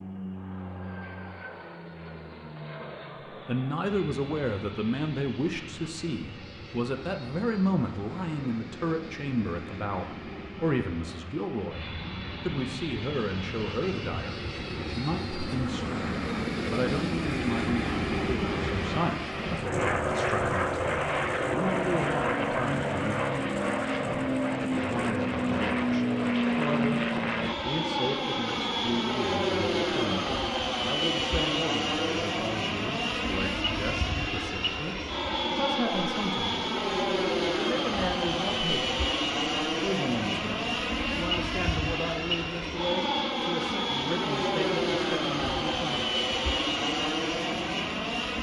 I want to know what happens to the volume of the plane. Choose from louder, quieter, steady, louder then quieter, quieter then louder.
louder.